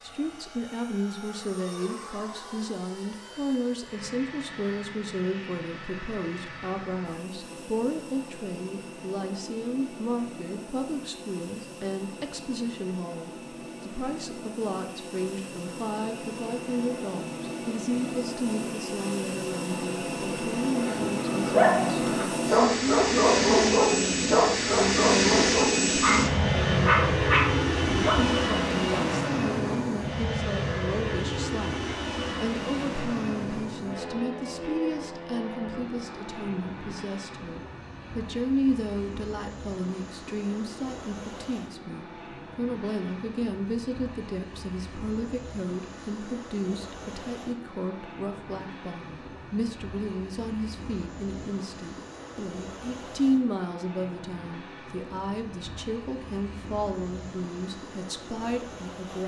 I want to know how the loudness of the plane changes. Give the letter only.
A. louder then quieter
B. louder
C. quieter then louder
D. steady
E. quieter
A.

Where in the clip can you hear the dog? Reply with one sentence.
You can hear the dog from 20.8 to 29.1 s.